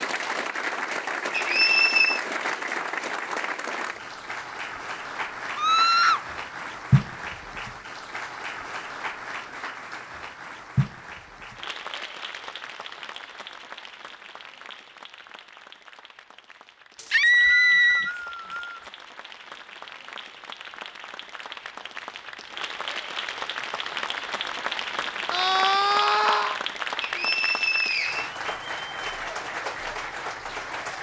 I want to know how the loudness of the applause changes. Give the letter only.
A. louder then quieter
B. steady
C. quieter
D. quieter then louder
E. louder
D.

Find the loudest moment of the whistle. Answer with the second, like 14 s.
2 s.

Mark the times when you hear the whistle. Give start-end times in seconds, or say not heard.
1.3-2.2, 16.9-18.9, 27.0-28.3.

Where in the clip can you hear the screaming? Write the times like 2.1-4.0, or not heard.
5.5-6.2, 17.1-18.1, 25.3-26.6.